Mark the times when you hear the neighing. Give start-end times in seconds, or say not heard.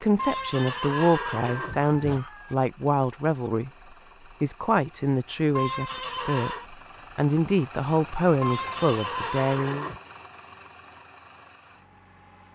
0.1-2.2, 5.5-6.7, 8.4-10.0.